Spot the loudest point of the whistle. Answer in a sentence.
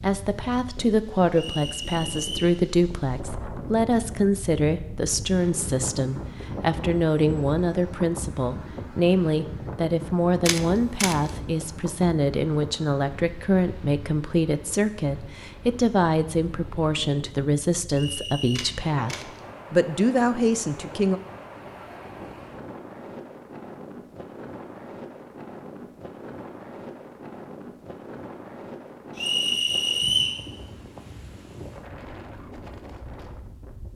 The volume of the whistle peaks at 30 seconds.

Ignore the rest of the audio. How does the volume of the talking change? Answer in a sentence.
The loudness of the talking stays about the same.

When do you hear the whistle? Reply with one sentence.
You can hear the whistle from 1.3 to 2.5 s, from 17.9 to 18.7 s and from 29.1 to 30.4 s.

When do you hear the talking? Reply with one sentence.
The talking can be heard from 0.0 to 21.2 s.